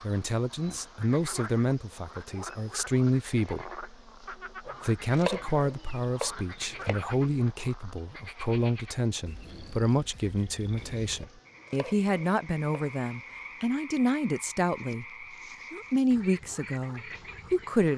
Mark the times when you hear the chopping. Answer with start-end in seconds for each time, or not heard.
4.7-7.0, 11.2-13.0.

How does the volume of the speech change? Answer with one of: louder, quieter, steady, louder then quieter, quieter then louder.
steady.